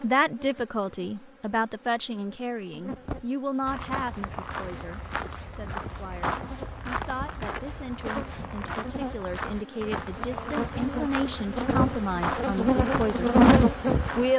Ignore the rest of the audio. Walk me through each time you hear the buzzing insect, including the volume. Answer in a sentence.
You can hear the buzzing insect from 0.0 to 14.3 s, getting louder.